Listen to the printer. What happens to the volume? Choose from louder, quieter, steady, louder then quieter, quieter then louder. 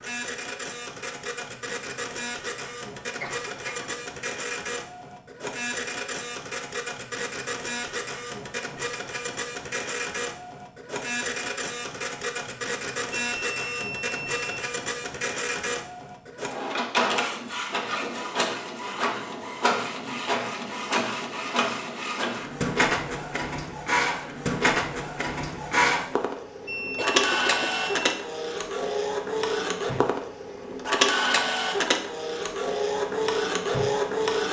louder.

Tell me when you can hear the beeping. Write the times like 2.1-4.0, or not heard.
13.1-14.6, 26.6-28.1.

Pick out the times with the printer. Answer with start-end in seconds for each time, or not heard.
0.0-34.4.